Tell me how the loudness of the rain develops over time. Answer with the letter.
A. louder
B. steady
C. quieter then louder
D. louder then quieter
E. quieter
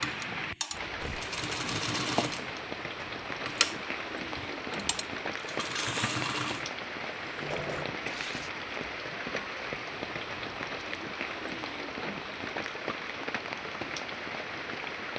B.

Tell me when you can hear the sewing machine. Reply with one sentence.
You can hear the sewing machine from 0.0 to 7.8 s.